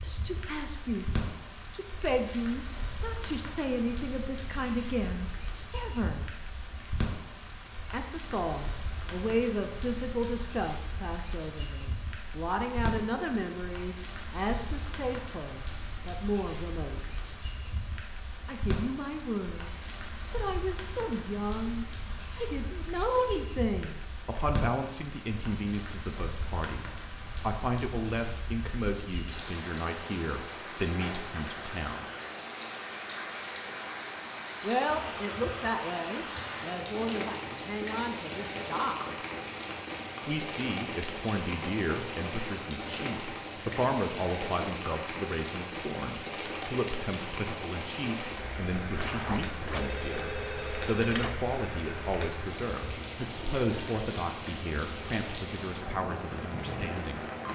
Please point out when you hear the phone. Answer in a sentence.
The phone can be heard from 49.0 to 51.4 s.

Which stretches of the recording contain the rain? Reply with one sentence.
The rain can be heard from 0.0 to 57.5 s.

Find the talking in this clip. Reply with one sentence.
The talking can be heard from 0.0 to 1.1 s, from 1.7 to 6.2 s, from 7.9 to 17.1 s, from 18.4 to 32.0 s, from 34.6 to 39.1 s and from 40.2 to 57.2 s.